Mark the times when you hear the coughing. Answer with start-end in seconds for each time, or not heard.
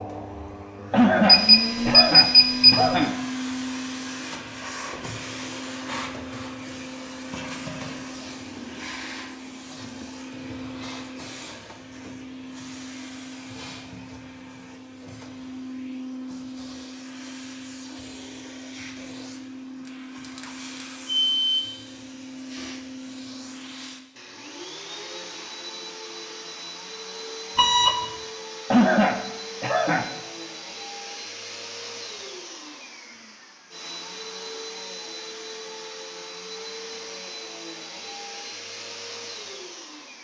0.9-3.1, 28.7-30.1.